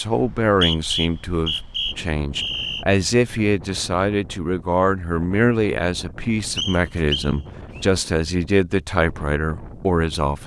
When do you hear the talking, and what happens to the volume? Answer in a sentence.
The talking can be heard from 0.0 to 10.4 s, at a steady volume.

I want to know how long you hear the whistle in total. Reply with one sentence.
The whistle can be heard for 4 seconds in total.